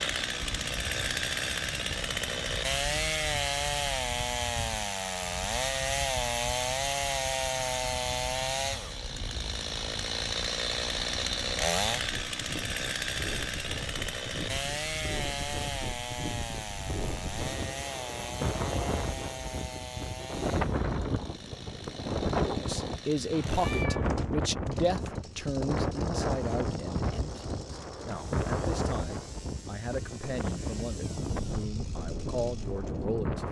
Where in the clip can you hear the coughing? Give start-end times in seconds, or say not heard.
not heard.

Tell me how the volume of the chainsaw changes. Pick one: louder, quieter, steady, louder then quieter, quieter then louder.
quieter.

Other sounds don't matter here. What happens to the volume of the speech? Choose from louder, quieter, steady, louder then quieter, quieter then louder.
quieter.